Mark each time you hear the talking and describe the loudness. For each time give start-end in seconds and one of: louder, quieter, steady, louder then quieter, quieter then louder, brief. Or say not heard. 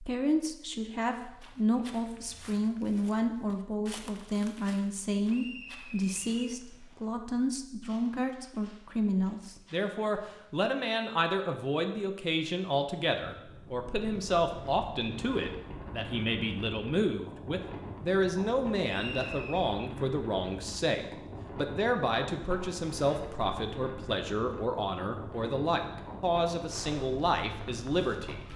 0.0-28.4 steady.